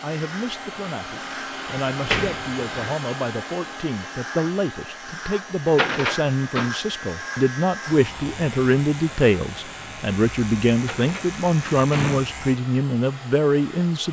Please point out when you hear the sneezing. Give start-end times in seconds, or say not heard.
not heard.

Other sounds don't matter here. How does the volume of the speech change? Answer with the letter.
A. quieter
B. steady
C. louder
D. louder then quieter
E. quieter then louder
C.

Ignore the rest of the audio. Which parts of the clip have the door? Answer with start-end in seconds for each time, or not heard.
1.9-3.0, 5.7-6.7, 10.8-12.2.